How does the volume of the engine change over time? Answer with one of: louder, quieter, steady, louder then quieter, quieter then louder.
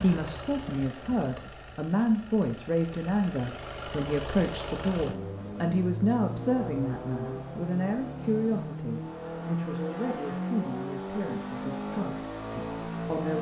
louder.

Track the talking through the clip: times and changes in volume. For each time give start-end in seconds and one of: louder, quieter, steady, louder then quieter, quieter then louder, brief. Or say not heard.
0.0-13.3 quieter.